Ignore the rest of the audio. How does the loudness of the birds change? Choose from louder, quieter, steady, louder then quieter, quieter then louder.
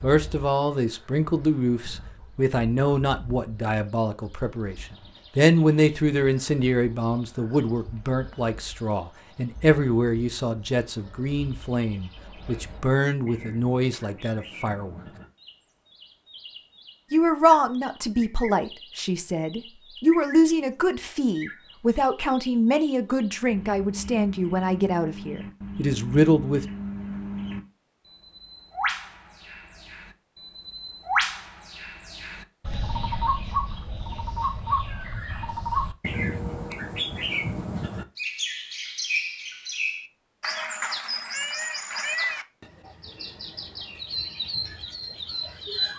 louder.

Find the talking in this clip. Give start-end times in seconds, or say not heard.
0.0-14.9, 17.1-26.6.